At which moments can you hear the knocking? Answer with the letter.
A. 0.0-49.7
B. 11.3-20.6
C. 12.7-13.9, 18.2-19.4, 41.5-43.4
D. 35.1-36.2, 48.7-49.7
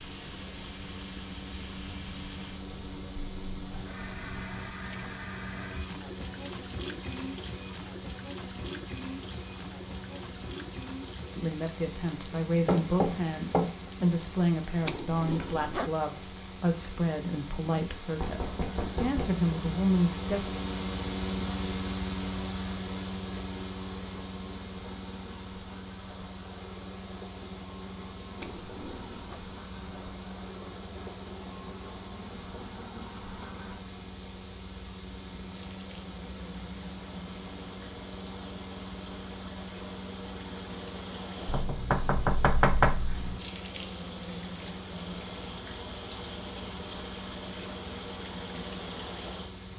C.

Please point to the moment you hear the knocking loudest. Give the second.
43 s.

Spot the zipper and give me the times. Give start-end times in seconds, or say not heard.
14.8-15.9, 28.4-29.4.